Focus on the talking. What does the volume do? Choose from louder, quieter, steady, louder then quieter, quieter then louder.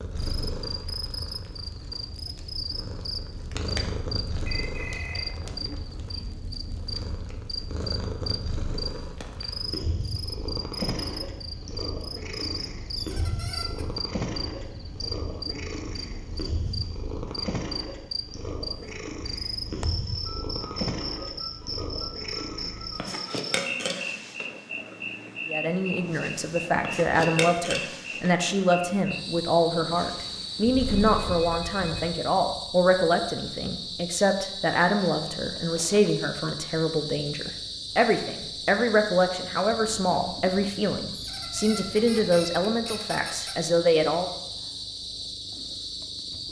steady.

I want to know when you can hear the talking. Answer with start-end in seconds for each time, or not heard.
25.4-44.2.